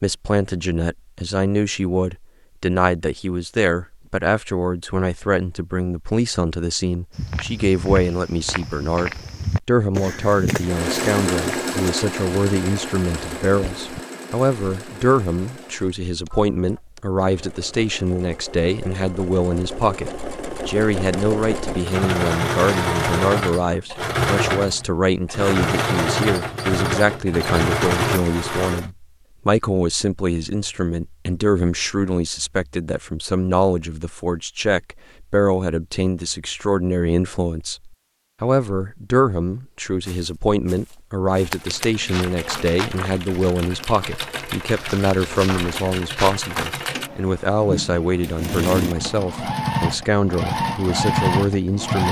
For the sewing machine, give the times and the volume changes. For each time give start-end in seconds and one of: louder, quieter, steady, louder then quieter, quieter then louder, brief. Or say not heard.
10.6-28.9 quieter then louder
41.4-52.0 louder.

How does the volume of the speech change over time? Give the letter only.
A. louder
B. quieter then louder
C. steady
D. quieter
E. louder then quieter
C.